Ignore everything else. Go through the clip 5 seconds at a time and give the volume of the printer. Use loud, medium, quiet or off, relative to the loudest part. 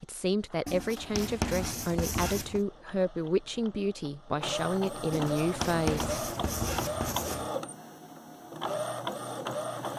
medium, loud.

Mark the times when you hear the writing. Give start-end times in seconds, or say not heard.
0.7-2.6, 5.1-7.5.